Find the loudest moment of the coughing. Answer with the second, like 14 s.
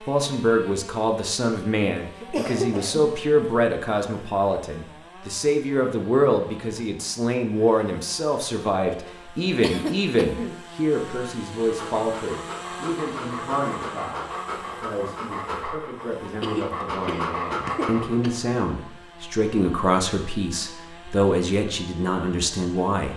3 s.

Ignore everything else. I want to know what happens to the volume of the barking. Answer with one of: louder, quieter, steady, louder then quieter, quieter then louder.
louder.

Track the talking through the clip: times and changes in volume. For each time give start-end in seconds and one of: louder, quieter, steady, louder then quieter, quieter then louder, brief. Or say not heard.
0.1-23.1 quieter then louder.